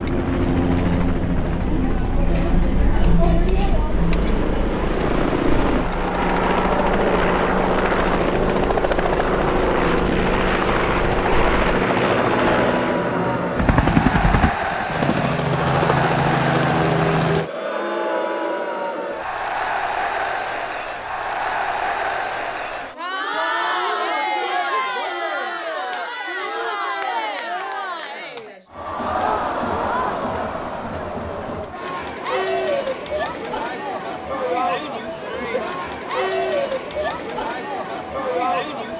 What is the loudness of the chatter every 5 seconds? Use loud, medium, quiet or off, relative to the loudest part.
loud, medium, loud, loud, loud, loud, loud, loud.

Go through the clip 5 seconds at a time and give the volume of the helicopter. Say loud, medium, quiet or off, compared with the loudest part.
medium, loud, loud, loud, off, off, off, off.